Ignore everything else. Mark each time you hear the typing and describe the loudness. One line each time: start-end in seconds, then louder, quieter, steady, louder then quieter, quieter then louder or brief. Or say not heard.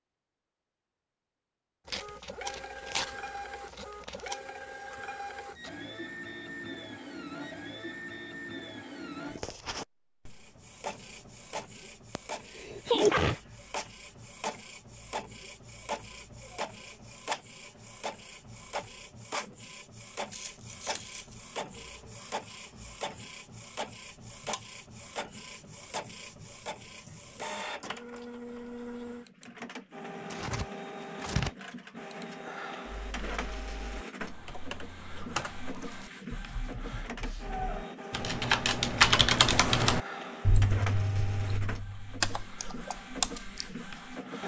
32.9-44.0 louder then quieter.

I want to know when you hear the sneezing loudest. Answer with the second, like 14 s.
13 s.